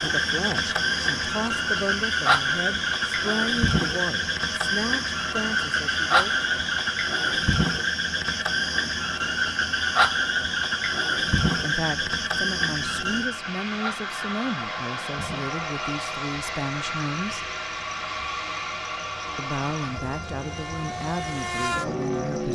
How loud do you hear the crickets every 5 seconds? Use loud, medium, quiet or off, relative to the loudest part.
loud, loud, loud, quiet, quiet.